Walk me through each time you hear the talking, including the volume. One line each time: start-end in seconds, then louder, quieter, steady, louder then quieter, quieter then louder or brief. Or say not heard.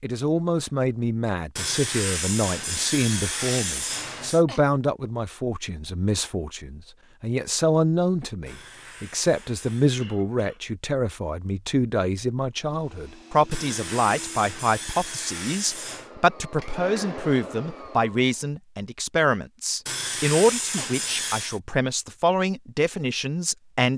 0.0-23.9 steady.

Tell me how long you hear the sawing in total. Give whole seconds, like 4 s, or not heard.
9 s.